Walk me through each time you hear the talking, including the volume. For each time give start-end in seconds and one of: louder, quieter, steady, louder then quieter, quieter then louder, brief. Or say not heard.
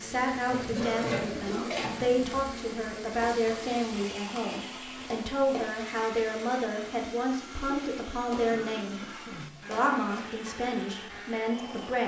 0.0-12.0 steady.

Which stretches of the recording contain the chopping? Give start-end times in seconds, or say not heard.
not heard.